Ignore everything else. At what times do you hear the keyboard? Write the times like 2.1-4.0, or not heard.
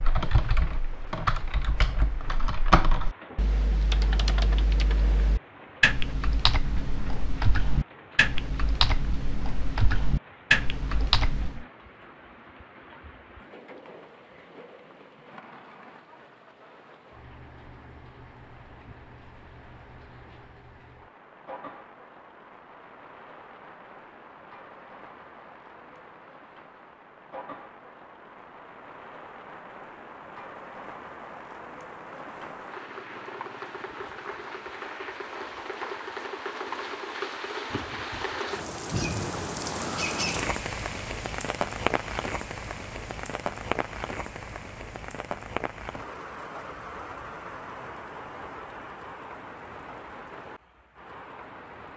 0.0-11.7.